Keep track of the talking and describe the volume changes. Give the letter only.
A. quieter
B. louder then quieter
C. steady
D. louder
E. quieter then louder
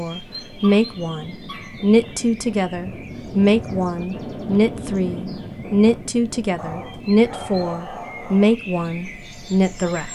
C.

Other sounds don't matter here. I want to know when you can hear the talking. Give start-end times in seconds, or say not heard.
0.0-10.1.